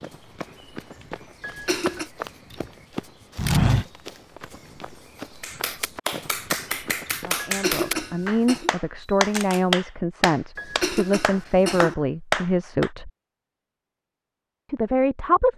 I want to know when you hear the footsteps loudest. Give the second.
4 s.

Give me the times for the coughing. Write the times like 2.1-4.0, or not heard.
1.4-2.1, 7.3-8.7, 10.6-11.9.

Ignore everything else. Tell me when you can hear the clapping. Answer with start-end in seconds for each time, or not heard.
5.4-12.9.